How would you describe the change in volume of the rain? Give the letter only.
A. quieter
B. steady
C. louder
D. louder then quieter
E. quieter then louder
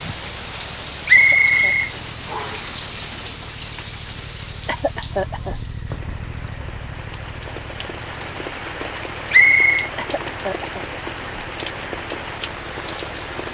E.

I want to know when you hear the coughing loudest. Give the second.
5 s.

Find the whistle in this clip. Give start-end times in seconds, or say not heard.
1.1-2.6, 9.3-9.9.